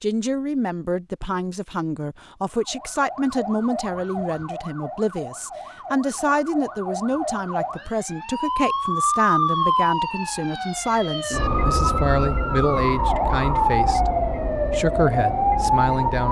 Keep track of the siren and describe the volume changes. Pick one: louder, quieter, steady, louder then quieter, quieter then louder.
louder.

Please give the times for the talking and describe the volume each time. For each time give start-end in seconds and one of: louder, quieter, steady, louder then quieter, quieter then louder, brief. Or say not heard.
0.0-16.2 steady.